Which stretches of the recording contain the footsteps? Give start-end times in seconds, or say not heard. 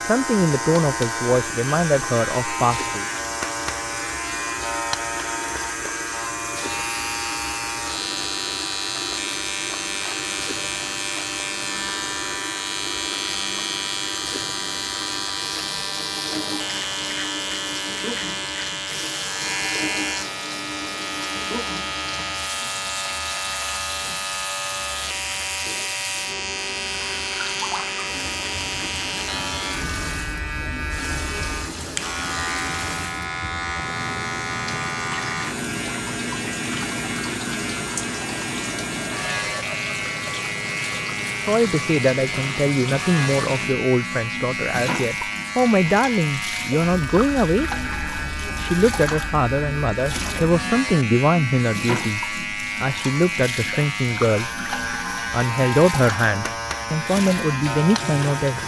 not heard.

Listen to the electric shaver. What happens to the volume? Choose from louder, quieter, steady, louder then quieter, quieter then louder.
steady.